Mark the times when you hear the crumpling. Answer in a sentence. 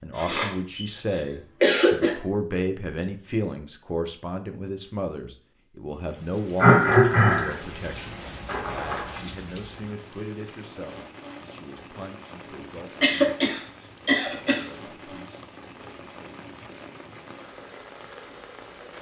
You can hear the crumpling from 8.4 to 9.2 s.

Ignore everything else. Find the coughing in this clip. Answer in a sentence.
You can hear the coughing from 0.1 to 2.1 s, from 6.6 to 7.5 s and from 13.0 to 14.7 s.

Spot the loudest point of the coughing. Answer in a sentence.
The loudest moment of the coughing is at 7 seconds.